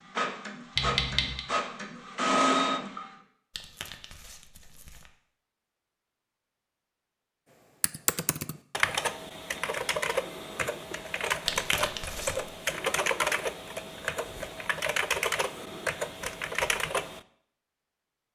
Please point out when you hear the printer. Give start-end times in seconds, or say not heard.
0.0-3.1.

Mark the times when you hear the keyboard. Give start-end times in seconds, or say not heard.
7.8-17.2.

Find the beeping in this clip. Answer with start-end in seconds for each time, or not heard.
0.8-1.4.